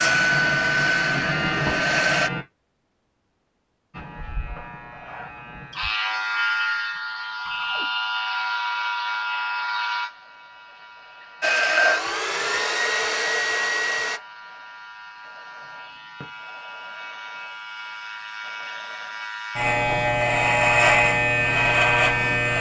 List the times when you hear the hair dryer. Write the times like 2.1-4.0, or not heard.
0.0-2.3, 11.4-14.2.